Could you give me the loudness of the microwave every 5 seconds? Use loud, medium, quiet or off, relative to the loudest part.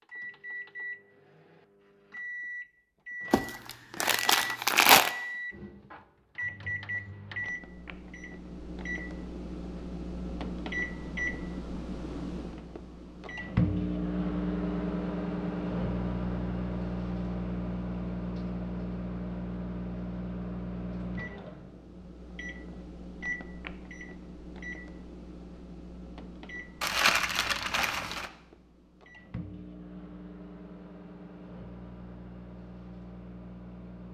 medium, medium, loud, loud, medium, quiet, quiet.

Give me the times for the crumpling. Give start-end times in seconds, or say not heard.
3.3-5.1, 26.8-28.3.